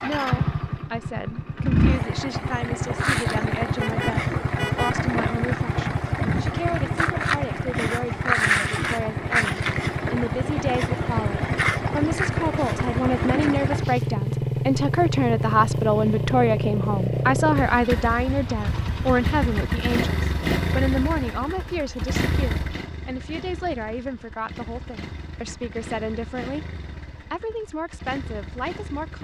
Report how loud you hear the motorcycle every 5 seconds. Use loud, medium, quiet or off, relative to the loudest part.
loud, loud, loud, loud, medium, quiet.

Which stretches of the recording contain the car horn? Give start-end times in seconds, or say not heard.
3.8-5.0, 18.2-19.5.